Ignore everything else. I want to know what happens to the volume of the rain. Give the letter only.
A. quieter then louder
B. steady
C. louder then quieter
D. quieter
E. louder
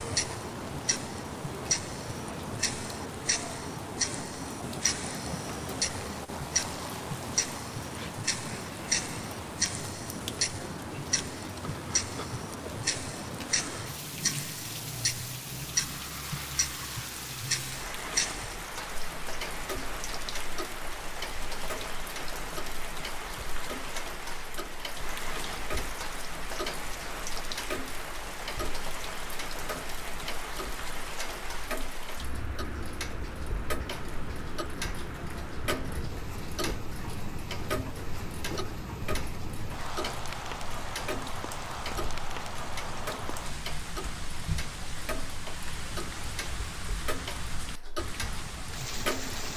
B.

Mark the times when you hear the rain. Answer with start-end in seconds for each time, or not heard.
0.0-49.5.